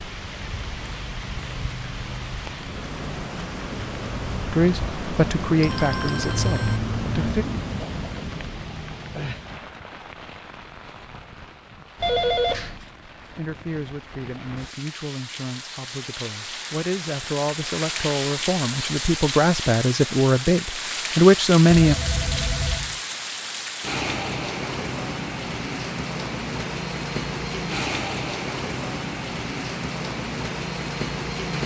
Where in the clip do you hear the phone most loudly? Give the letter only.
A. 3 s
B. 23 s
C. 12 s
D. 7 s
C.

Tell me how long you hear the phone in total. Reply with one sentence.
The phone can be heard for 4 seconds in total.